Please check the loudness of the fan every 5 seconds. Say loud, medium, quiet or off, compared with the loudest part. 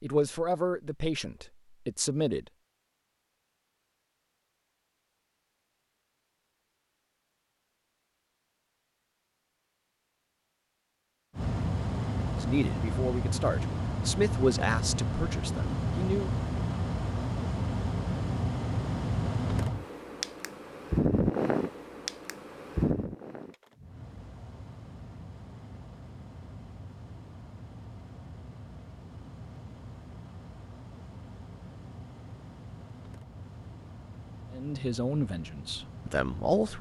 off, off, loud, loud, loud, quiet, quiet, quiet.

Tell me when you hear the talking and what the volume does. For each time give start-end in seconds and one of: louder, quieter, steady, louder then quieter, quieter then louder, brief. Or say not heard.
0.0-2.5 brief
12.3-16.3 louder then quieter
34.5-36.7 brief.